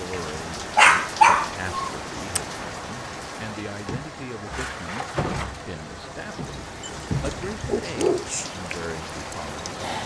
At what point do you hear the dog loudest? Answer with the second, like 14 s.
1 s.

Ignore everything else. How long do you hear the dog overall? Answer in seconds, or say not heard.
3 s.